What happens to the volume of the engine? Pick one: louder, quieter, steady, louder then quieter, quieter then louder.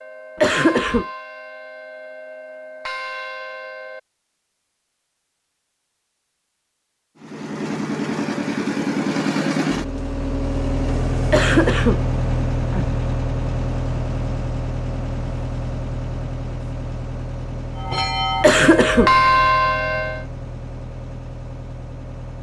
quieter.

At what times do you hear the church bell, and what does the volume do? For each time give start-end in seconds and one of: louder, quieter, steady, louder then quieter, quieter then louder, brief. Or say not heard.
0.0-4.0 quieter then louder
17.8-20.2 brief.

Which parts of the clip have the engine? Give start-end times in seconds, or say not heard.
7.2-22.3.